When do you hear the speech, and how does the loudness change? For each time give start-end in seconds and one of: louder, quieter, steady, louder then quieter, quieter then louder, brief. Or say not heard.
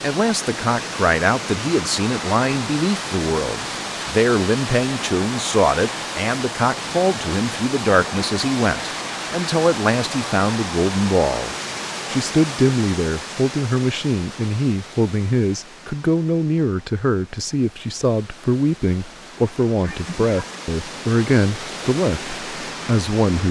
0.0-23.4 steady.